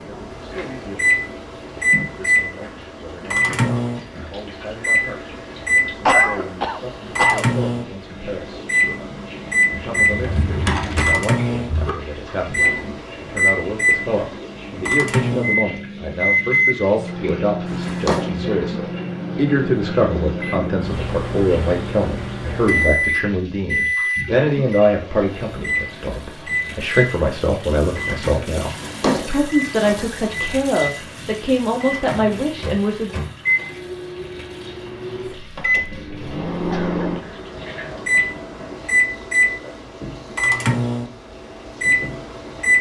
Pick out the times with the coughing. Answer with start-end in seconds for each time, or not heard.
6.0-7.5, 36.7-37.5.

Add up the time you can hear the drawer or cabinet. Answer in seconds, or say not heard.
4 s.